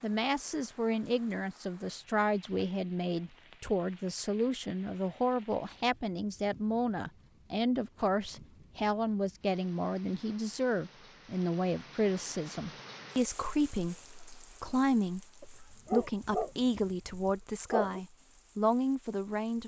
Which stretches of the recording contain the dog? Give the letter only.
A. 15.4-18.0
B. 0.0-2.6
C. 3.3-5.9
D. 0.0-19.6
A.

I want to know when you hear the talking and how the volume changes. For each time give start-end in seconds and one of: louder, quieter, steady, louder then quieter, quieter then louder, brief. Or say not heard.
0.0-19.6 steady.